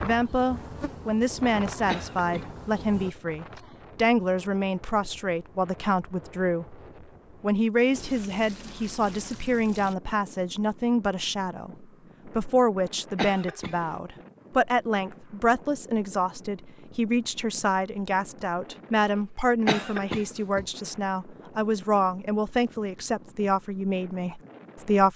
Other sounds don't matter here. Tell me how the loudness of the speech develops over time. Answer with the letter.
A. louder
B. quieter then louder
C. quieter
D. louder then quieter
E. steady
E.